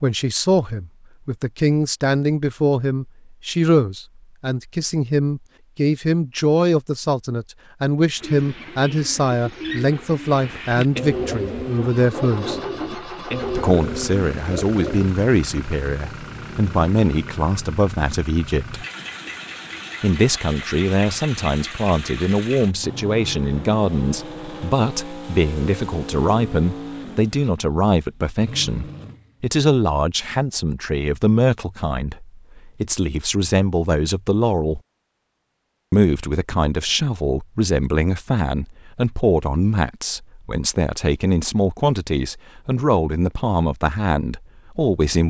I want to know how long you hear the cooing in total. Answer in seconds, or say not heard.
7 s.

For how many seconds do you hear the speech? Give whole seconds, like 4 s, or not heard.
42 s.